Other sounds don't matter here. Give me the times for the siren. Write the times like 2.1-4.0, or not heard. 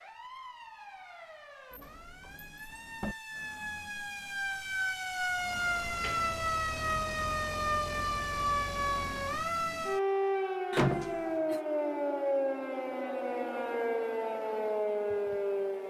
0.0-15.8.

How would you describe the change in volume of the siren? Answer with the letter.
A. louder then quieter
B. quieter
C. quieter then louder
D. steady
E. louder
E.